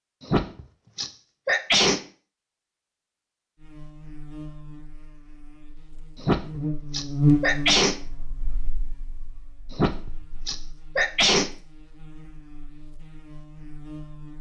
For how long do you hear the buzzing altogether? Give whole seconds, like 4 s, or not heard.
11 s.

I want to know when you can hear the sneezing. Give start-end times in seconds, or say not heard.
0.2-2.0, 6.2-8.0, 9.7-11.5.